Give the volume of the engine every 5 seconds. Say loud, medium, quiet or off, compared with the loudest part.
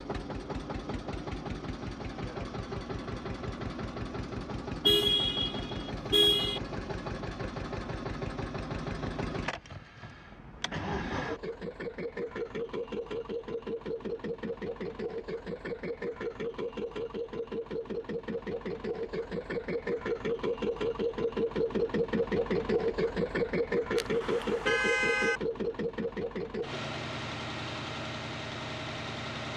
medium, medium, medium, medium, loud, medium.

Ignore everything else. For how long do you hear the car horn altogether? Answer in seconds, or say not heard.
3 s.